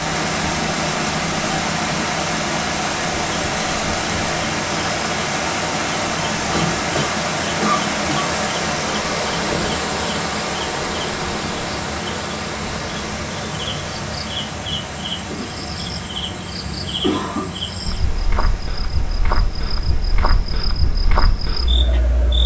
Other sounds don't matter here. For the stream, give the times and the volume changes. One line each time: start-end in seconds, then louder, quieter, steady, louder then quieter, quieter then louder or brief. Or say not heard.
0.0-22.4 quieter.